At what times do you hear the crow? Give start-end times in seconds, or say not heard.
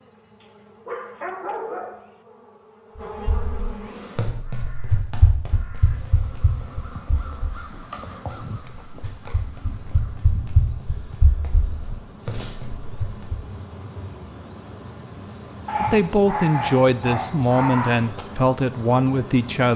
4.4-10.2.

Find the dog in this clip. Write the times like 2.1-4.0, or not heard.
0.4-2.1, 15.7-18.1.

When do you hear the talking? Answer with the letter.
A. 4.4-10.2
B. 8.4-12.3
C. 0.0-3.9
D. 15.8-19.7
D.